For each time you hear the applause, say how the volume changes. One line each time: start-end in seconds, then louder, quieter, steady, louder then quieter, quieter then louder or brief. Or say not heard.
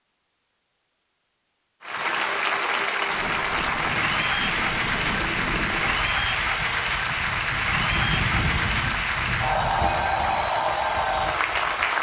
1.8-11.9 steady.